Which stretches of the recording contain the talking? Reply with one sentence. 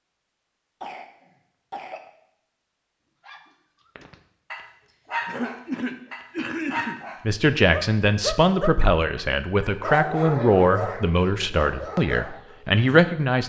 The talking can be heard from 7.2 to 13.4 s.